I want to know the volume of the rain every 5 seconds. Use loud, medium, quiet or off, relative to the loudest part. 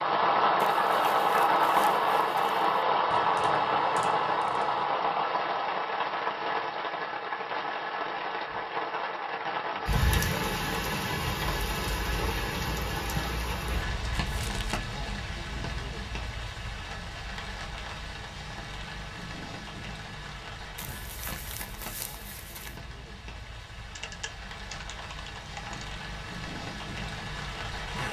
loud, medium, medium, quiet, quiet, quiet.